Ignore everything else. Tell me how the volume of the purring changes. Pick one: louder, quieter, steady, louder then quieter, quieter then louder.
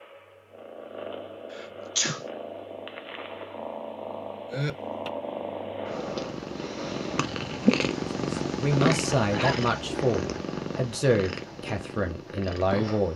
louder then quieter.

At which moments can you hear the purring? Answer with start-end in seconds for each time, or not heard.
0.0-13.1.